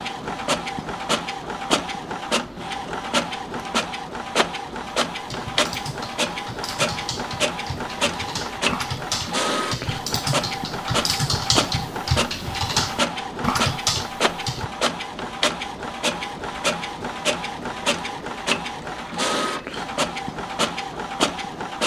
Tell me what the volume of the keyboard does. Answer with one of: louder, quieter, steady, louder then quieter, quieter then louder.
louder.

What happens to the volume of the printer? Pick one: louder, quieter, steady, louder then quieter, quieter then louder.
steady.